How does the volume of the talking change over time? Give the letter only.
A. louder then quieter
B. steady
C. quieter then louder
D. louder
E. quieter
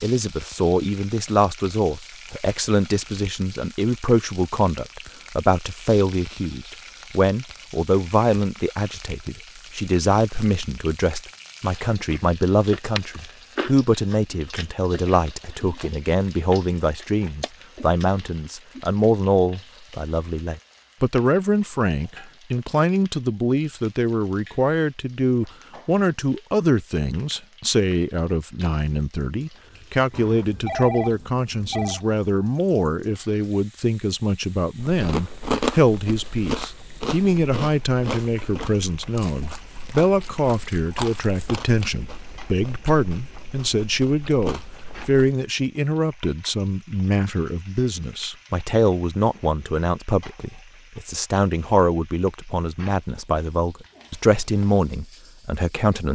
B.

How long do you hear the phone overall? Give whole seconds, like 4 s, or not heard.
2 s.